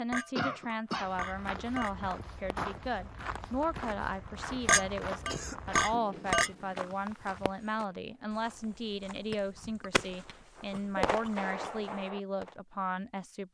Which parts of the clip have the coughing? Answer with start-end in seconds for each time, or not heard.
0.3-1.1, 5.2-5.8, 10.7-11.9.